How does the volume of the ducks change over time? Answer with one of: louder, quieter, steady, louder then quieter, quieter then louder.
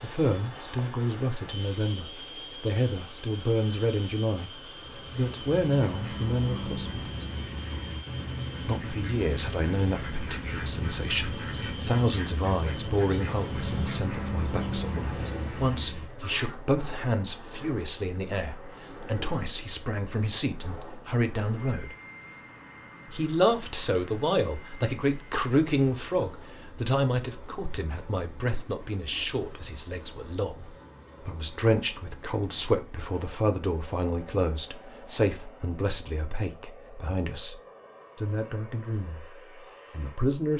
steady.